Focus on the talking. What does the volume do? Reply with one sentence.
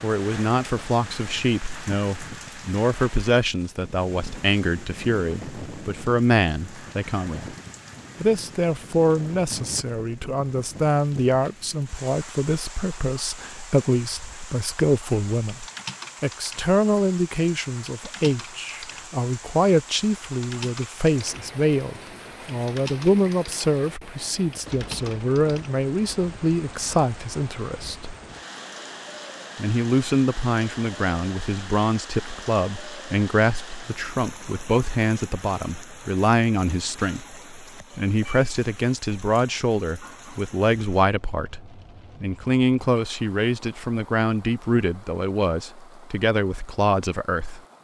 The volume of the talking stays about the same.